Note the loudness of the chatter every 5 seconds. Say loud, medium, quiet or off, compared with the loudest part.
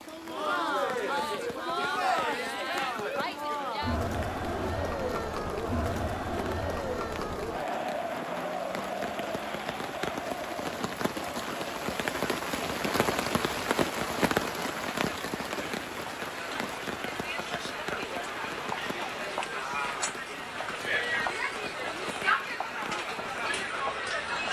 loud, loud, medium, medium, loud.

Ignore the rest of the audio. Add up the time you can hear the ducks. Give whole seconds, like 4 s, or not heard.
not heard.